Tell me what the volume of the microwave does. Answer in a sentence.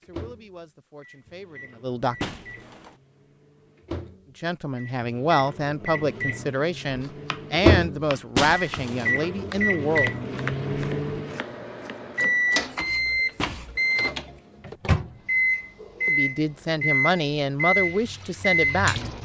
The loudness of the microwave goes up.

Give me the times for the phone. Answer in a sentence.
You can't hear the phone here.